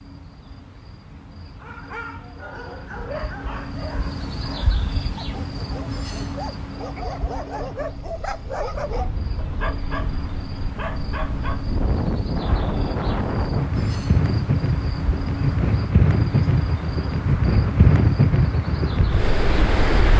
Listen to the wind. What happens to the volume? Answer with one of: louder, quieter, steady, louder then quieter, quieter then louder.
louder.